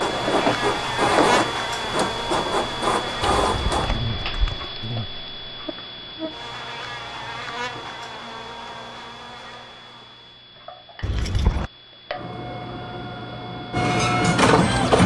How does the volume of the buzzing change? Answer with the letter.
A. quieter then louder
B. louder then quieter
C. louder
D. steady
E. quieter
E.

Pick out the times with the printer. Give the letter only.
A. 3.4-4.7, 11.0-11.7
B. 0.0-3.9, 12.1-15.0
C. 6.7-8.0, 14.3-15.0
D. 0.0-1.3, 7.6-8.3
B.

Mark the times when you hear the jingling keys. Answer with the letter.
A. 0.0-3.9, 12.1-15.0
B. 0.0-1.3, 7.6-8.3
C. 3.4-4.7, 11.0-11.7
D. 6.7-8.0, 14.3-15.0
C.